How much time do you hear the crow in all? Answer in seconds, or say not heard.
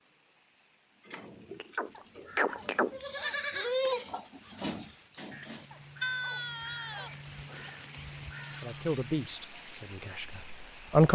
5 s.